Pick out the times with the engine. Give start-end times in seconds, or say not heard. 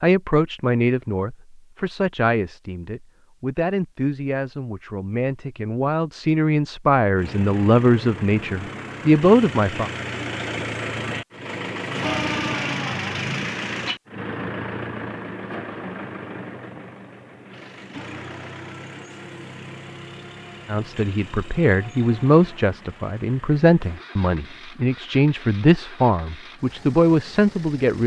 7.2-28.0.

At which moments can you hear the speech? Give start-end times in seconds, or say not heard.
0.0-9.9, 20.6-28.0.